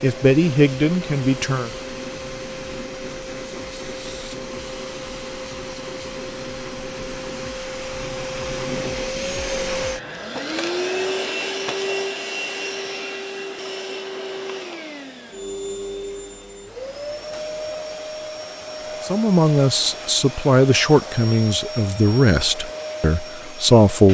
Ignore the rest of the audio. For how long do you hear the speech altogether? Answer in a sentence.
The speech can be heard for 7 seconds in total.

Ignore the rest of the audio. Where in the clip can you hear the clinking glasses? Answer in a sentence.
The clinking glasses can't be heard in this clip.